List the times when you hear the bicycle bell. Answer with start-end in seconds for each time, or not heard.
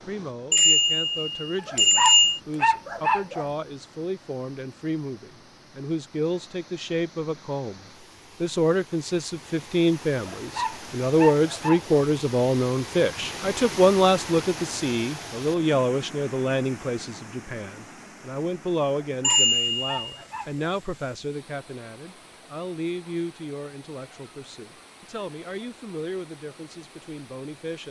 0.5-2.4, 19.2-19.9.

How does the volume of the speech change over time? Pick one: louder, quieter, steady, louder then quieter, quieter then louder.
louder then quieter.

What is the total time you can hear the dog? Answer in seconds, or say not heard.
5 s.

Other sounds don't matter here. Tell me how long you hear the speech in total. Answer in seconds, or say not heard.
27 s.